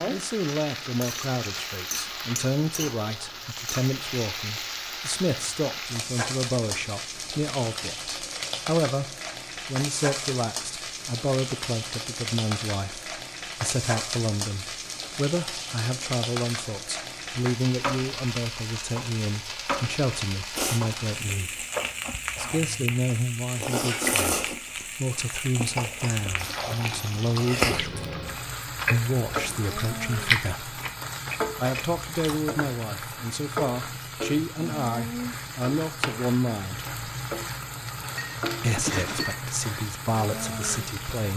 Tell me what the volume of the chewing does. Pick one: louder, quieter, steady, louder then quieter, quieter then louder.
louder.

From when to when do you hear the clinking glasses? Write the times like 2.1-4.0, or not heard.
38.0-39.5.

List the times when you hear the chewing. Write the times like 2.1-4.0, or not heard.
20.6-32.5.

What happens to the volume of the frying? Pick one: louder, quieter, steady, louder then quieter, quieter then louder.
steady.